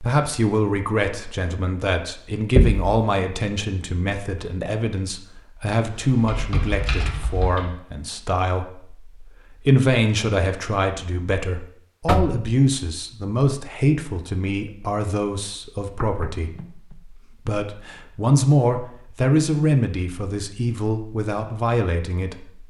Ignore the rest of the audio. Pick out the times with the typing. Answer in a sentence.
The typing can be heard from 6.0 to 7.7 s.